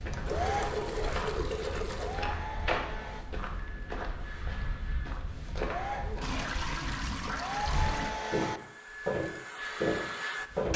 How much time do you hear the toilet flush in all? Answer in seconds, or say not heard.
4 s.